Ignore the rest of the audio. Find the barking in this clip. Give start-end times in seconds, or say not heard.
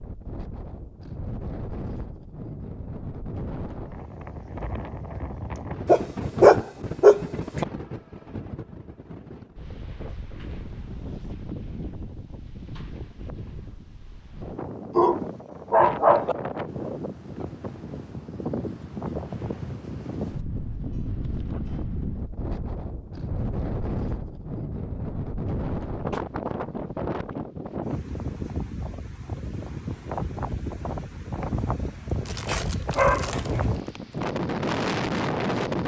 5.8-7.7, 14.9-16.4, 32.2-33.6.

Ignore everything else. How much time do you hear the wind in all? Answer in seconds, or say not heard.
36 s.